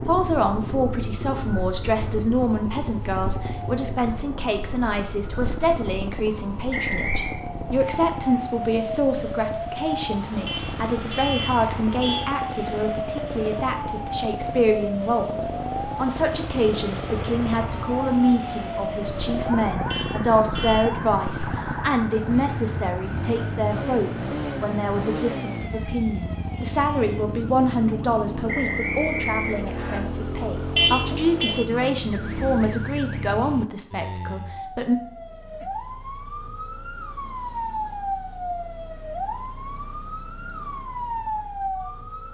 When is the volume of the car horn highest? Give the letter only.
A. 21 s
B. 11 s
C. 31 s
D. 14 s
C.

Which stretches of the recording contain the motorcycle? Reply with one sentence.
The motorcycle can be heard from 0.0 to 33.6 s.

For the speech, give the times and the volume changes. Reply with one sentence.
The speech can be heard from 0.1 to 35.0 s, at a steady volume.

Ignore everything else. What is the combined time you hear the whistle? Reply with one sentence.
You can hear the whistle for 2 seconds altogether.